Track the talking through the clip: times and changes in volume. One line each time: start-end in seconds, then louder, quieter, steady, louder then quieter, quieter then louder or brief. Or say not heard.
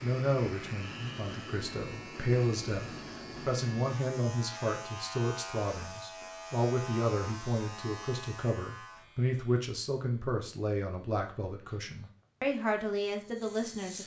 0.0-14.0 steady.